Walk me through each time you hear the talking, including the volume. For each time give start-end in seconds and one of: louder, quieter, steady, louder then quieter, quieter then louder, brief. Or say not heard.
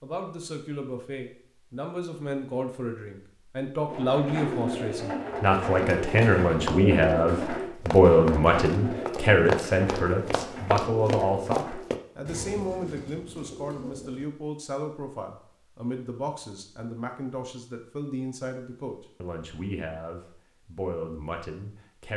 0.0-22.1 louder then quieter.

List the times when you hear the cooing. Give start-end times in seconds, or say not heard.
3.9-14.2.